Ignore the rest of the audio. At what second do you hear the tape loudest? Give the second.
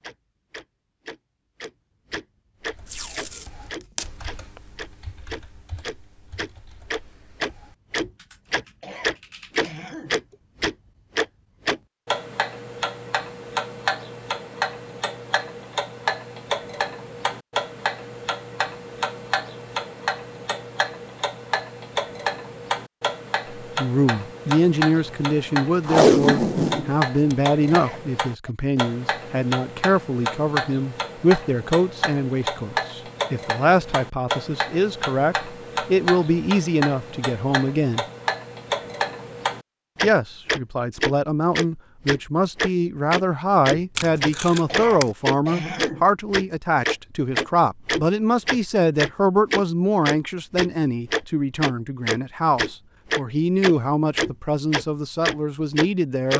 26 s.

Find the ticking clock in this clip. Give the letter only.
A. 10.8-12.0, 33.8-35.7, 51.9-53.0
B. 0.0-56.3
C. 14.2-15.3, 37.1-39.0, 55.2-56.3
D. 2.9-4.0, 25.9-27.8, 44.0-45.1
B.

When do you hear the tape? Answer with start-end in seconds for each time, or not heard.
2.9-4.0, 25.9-27.8, 44.0-45.1.